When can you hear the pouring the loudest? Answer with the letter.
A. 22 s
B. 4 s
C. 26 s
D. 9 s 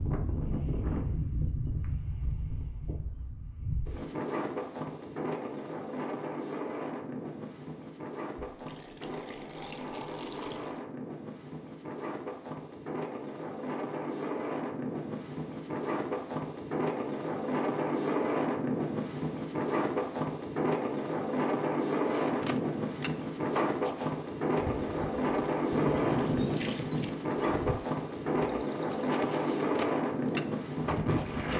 C.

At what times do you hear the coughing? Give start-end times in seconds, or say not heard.
not heard.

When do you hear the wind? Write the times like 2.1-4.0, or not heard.
0.0-31.5.